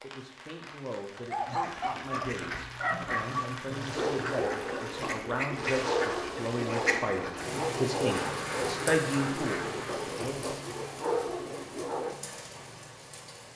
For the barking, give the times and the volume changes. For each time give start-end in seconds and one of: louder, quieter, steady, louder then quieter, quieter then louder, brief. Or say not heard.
1.1-12.2 steady.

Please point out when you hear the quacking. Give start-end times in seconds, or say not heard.
1.4-10.1.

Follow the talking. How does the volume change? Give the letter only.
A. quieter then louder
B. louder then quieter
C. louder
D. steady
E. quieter
C.